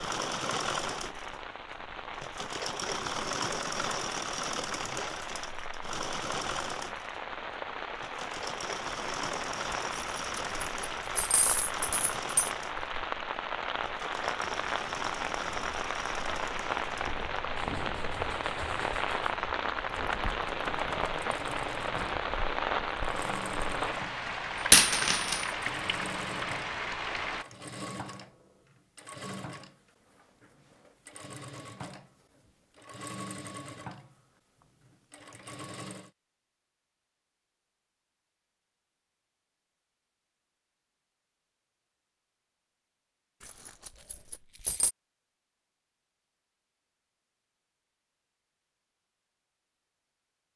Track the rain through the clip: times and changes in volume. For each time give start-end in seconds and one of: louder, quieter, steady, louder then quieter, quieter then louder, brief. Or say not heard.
0.0-27.4 louder.